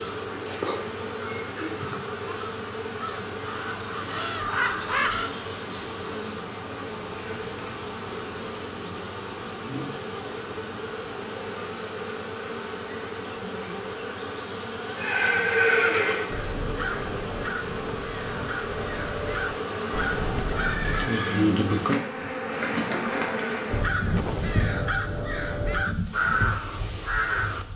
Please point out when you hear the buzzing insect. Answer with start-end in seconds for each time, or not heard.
0.0-27.7.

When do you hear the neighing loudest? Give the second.
16 s.